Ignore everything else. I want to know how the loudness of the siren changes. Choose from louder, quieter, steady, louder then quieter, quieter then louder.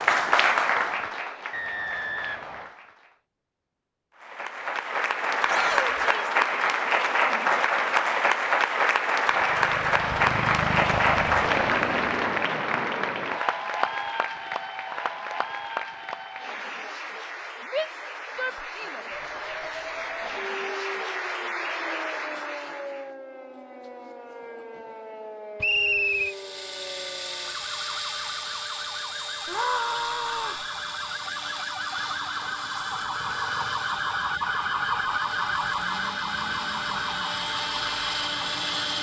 louder.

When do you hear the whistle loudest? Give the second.
26 s.